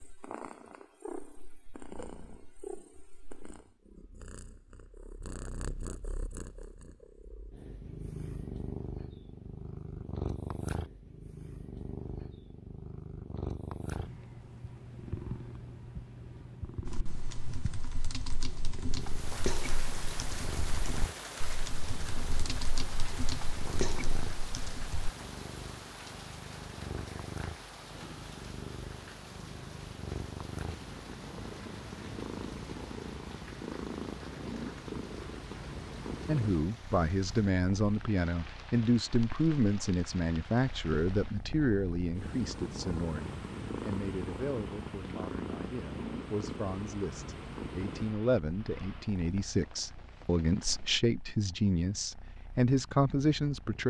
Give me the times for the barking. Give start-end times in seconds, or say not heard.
not heard.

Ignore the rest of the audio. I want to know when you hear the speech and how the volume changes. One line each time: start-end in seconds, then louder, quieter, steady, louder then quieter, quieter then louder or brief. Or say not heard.
36.2-53.8 quieter then louder.